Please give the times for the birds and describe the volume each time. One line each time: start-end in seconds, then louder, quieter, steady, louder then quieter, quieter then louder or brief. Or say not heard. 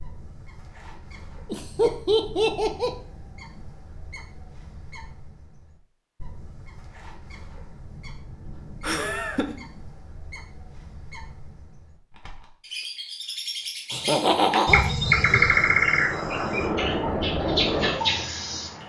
0.0-18.8 louder.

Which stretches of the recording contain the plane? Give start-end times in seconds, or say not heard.
15.0-18.8.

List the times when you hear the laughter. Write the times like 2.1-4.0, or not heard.
1.5-2.9, 8.8-9.6, 13.9-14.9.